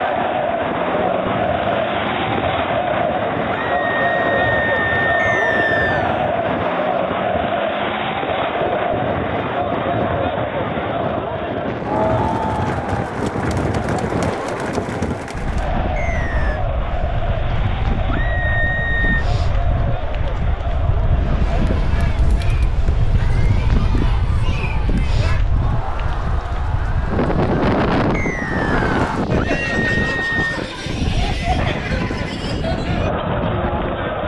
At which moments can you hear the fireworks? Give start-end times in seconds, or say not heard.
not heard.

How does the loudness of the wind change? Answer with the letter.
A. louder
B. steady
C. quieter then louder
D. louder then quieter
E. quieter
A.